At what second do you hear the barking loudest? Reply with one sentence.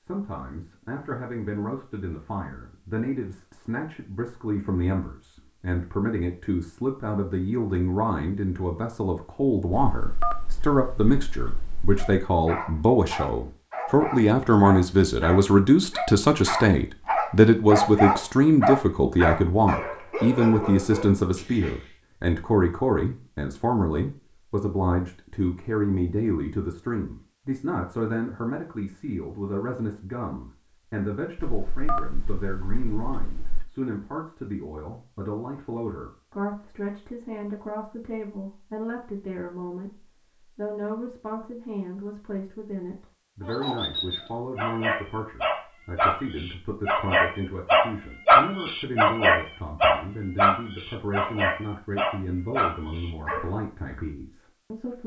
The volume of the barking peaks at 48 seconds.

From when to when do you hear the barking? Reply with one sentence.
The barking can be heard from 11.9 to 21.9 s and from 43.4 to 53.5 s.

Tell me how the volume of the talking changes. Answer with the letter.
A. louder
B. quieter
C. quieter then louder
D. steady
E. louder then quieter
E.